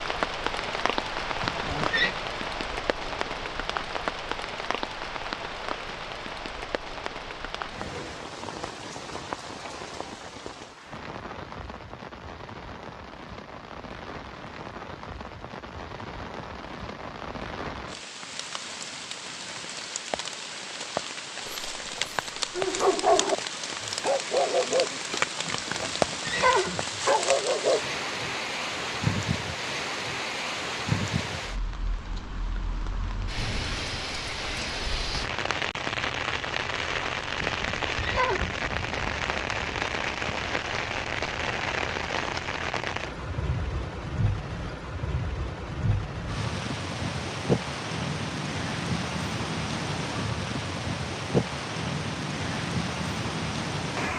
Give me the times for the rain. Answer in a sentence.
You can hear the rain from 0.0 to 54.1 s.